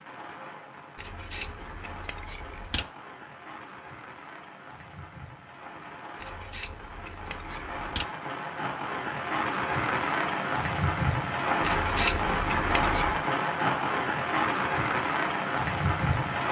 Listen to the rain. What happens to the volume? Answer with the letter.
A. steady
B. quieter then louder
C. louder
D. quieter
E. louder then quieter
C.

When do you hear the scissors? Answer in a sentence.
The scissors can be heard from 0.9 to 2.9 s, from 6.2 to 8.1 s and from 11.6 to 13.2 s.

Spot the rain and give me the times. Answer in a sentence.
You can hear the rain from 0.0 to 16.4 s.